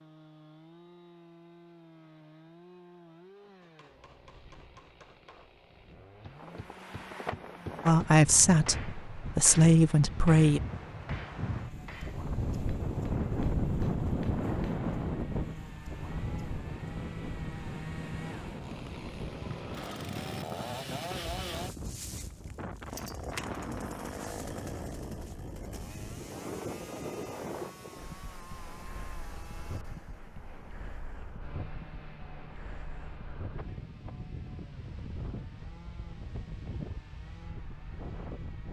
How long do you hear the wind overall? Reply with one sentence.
The wind can be heard for 32 seconds in total.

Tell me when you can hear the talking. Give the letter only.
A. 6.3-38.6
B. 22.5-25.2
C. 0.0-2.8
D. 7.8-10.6
D.